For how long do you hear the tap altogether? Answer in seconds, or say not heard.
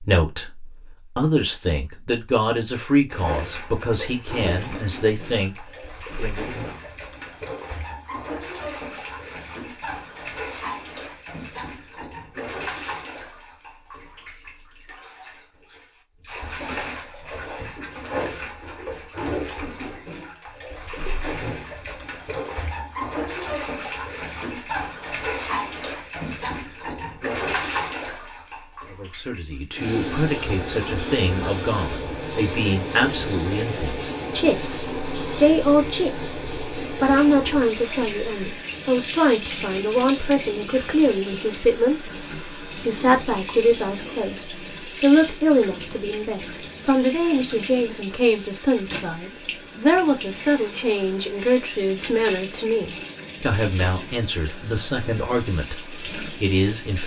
54 s.